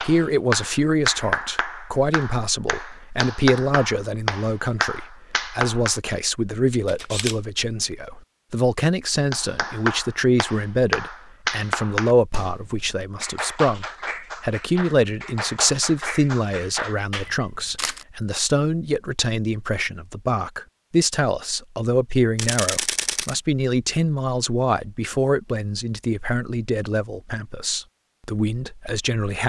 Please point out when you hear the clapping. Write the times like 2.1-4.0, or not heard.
0.0-6.2, 9.3-17.3.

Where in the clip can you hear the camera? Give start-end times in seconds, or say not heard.
6.8-7.3, 17.1-18.1, 22.4-23.4.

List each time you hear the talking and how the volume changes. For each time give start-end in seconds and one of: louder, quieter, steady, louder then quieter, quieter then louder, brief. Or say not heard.
0.0-29.4 steady.